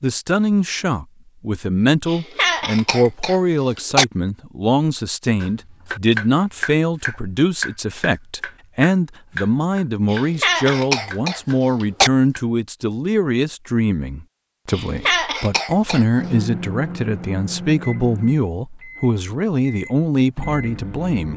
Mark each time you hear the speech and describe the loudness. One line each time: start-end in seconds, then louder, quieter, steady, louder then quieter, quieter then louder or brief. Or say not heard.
0.0-21.3 steady.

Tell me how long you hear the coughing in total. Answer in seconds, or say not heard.
5 s.